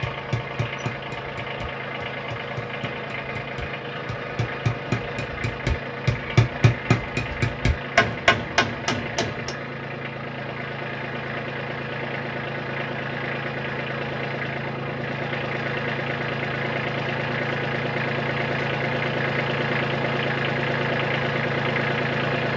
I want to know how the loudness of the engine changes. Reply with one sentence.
The loudness of the engine goes up.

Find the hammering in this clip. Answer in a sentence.
You can hear the hammering from 0.0 to 9.5 s.